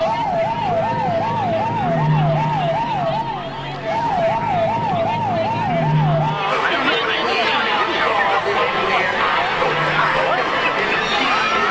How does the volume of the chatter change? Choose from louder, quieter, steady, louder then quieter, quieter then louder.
louder.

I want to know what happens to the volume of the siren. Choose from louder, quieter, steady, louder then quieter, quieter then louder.
quieter.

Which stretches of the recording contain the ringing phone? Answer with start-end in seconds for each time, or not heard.
not heard.